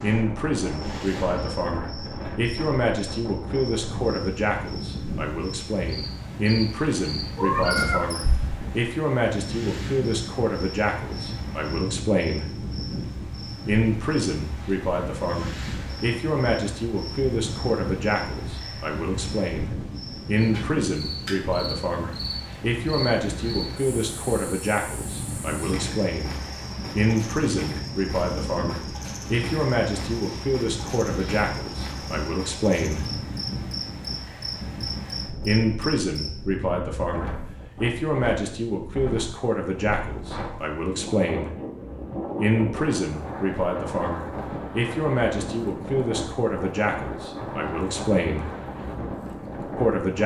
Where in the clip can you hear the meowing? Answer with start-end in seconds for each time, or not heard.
7.3-8.5.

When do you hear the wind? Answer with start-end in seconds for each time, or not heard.
0.0-50.2.